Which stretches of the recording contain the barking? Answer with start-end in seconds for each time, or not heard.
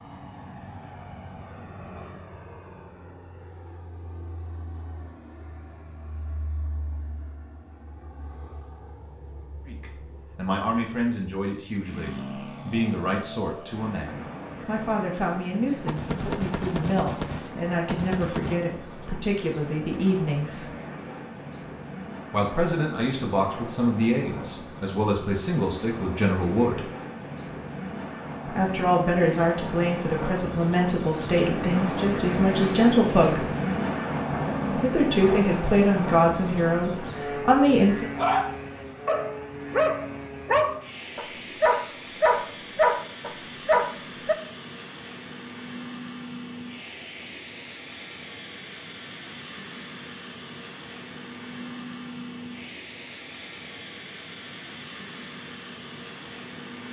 38.1-44.4.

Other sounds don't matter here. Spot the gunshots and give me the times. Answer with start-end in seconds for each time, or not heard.
15.8-18.6.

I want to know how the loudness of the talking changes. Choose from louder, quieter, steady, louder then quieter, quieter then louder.
louder.